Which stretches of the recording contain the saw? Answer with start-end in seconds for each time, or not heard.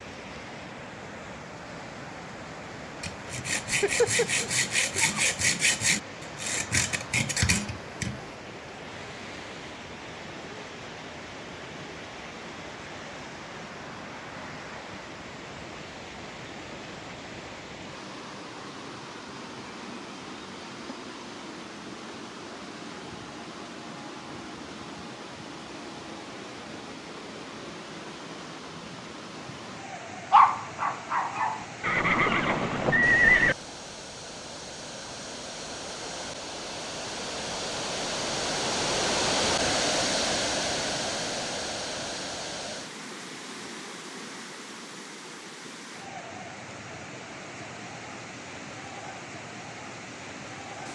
3.0-8.2.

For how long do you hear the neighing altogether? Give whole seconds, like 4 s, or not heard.
2 s.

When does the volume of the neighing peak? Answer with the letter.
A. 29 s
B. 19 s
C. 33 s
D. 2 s
C.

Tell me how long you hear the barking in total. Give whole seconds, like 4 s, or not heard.
3 s.